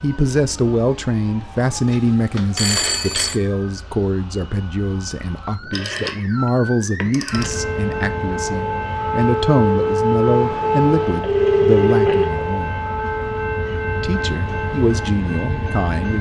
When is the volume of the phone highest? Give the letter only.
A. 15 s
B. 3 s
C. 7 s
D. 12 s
D.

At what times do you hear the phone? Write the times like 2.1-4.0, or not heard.
1.9-3.4, 5.7-6.2, 7.0-7.5, 11.1-12.4.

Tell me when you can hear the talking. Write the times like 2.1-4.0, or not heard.
0.0-12.8, 14.0-16.1.